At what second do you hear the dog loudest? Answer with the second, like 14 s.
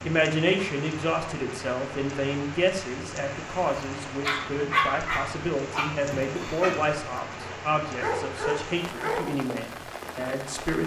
5 s.